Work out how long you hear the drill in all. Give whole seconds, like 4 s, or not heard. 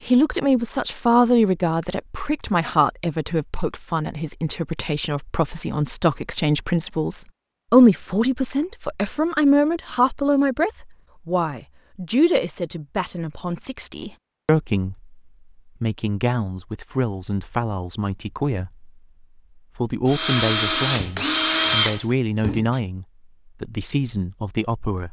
3 s.